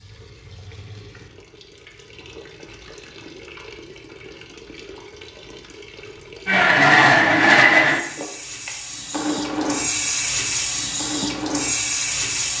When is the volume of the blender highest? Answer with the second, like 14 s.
7 s.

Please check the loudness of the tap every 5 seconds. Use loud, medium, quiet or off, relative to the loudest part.
quiet, medium, loud.